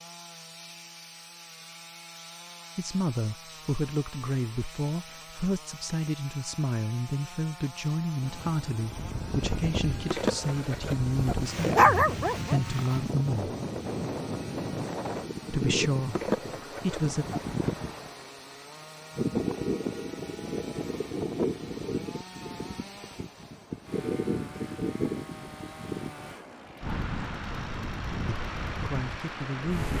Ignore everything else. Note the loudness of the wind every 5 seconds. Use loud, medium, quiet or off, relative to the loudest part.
off, loud, loud, loud, loud, loud.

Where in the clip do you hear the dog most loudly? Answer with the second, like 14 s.
12 s.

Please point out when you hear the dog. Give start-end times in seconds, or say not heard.
10.1-12.6, 16.1-17.8.